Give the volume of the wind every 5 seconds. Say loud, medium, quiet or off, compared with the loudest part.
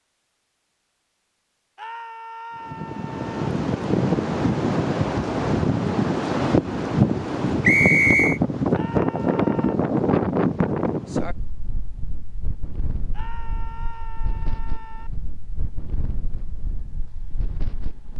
loud, loud, medium, quiet.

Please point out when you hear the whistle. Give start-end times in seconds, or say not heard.
7.6-8.4.